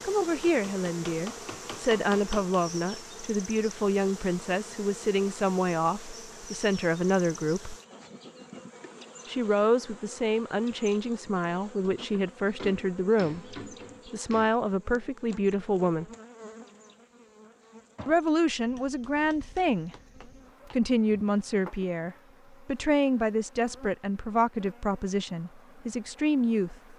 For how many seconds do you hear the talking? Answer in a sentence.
The talking can be heard for 23 seconds in total.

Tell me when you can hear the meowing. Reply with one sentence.
You can't hear the meowing here.